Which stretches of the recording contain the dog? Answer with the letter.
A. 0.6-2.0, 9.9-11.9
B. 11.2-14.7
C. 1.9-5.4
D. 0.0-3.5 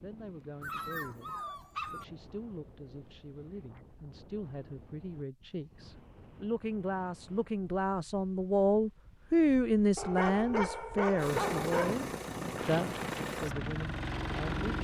A.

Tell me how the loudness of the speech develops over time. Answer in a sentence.
The loudness of the speech goes up, then down.